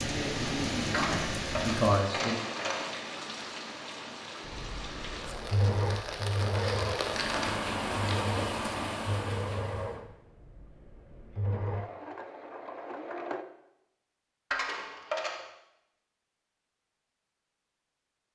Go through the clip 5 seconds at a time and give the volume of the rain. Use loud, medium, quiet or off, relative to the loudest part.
loud, loud, off, off.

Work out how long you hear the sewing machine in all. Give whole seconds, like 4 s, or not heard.
9 s.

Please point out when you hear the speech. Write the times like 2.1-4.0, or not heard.
0.0-2.4.